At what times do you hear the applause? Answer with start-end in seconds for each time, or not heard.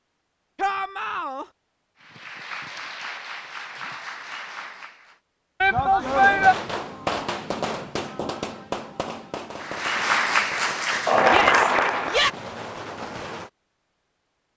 2.0-5.2, 9.6-12.3.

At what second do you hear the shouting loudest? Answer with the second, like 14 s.
6 s.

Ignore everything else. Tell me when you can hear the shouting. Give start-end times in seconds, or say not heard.
0.6-1.4, 5.6-6.5, 11.2-12.3.